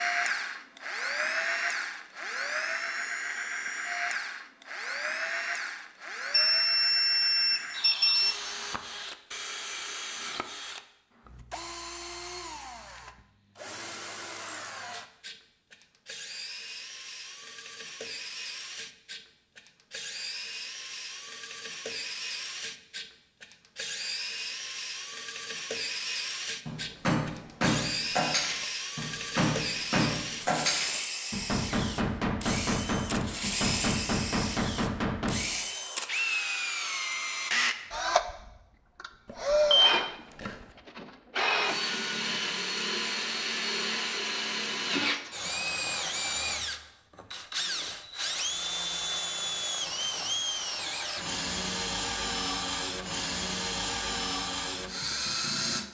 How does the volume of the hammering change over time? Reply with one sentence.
The loudness of the hammering stays about the same.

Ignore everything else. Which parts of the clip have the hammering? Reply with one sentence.
The hammering can be heard from 26.6 to 35.5 s.